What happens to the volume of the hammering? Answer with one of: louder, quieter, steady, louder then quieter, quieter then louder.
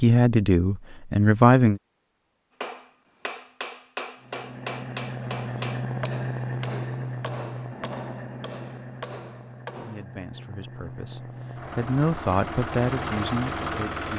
quieter.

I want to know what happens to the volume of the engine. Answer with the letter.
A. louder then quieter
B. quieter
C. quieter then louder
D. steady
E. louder
C.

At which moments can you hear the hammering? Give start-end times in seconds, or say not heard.
2.6-10.1.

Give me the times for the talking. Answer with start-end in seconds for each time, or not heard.
0.0-1.8, 9.8-14.1.